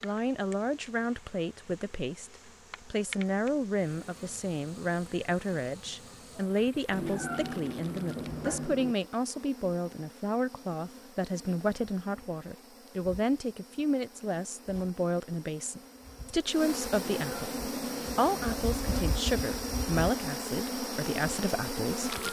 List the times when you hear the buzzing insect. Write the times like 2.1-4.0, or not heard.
0.0-22.2.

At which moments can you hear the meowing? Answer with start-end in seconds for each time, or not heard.
6.9-8.9, 16.9-18.8.